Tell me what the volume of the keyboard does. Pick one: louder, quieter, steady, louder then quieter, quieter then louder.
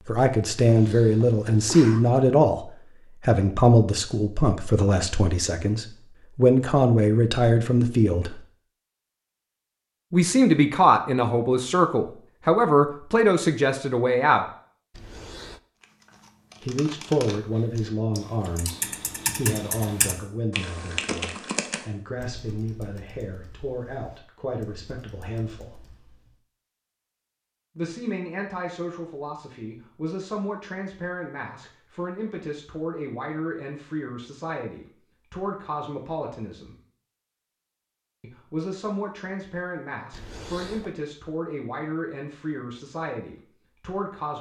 louder then quieter.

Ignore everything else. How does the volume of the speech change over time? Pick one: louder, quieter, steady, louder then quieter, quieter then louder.
quieter.